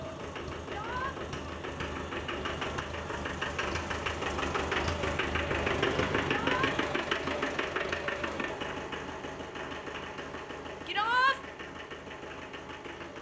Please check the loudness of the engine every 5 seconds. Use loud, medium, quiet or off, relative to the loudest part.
loud, loud, medium.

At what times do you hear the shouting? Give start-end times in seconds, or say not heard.
0.7-1.1, 6.3-6.8, 10.8-11.4.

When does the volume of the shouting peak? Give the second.
11 s.